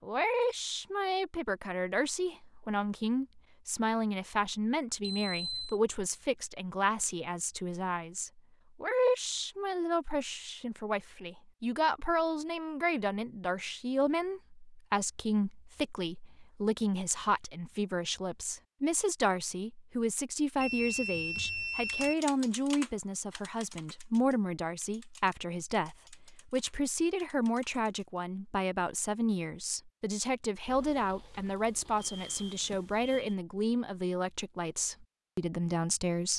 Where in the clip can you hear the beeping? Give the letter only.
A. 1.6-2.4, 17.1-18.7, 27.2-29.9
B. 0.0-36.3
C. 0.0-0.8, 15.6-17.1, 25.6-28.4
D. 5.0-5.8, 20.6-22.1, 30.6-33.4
D.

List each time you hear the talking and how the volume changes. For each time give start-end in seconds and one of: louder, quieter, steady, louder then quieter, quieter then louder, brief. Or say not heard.
0.0-36.3 steady.